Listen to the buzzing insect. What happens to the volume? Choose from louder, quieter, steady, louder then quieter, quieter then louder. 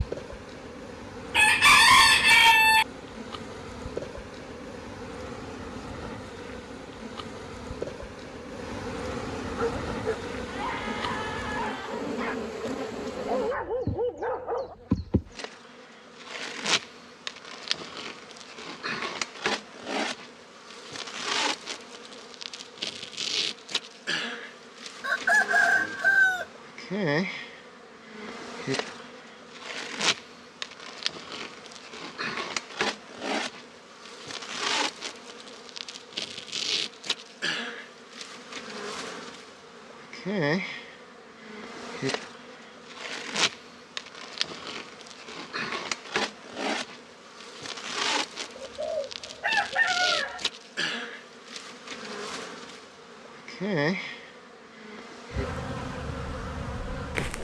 steady.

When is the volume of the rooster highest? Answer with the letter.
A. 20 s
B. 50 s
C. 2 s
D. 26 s
C.